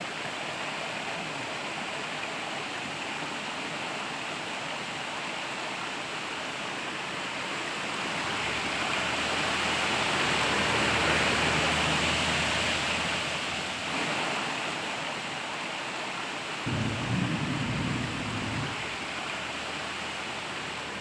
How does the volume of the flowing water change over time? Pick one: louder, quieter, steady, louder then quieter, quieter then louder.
louder then quieter.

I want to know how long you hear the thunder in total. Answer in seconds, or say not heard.
2 s.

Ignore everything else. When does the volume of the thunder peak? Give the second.
17 s.